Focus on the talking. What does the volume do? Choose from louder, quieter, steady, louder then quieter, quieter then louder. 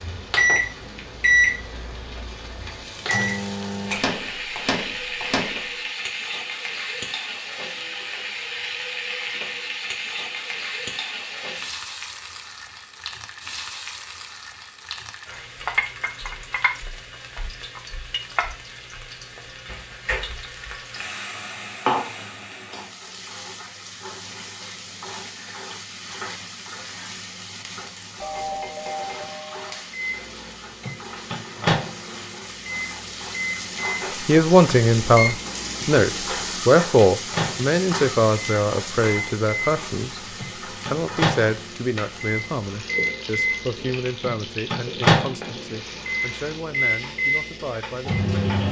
quieter.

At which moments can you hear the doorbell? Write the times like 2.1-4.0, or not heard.
28.2-29.8.